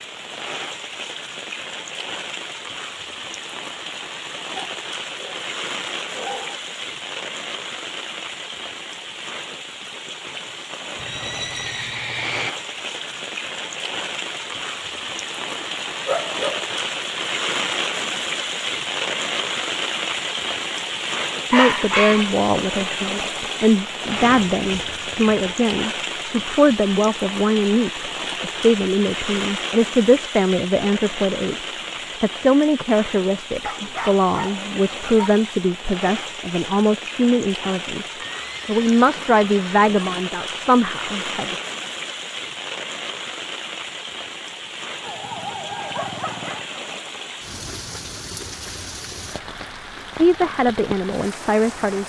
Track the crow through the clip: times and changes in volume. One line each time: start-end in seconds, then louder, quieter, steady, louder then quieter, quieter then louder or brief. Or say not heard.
not heard.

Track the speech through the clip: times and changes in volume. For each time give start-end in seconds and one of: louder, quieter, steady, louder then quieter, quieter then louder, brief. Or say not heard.
21.4-41.6 steady
50.1-52.0 brief.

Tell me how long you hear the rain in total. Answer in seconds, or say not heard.
52 s.